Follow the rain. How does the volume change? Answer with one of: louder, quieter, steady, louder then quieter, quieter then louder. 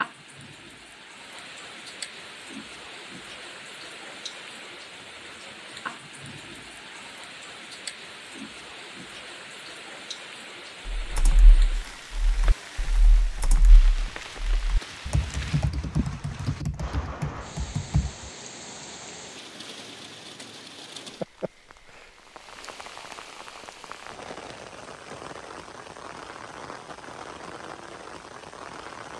steady.